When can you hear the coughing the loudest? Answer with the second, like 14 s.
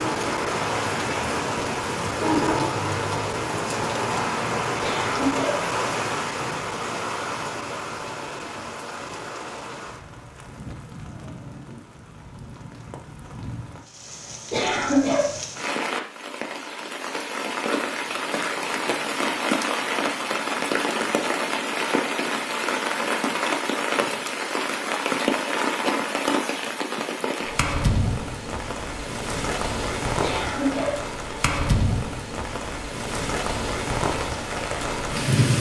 15 s.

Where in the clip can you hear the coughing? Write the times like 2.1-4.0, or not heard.
4.8-5.7, 14.5-15.3, 30.2-31.1.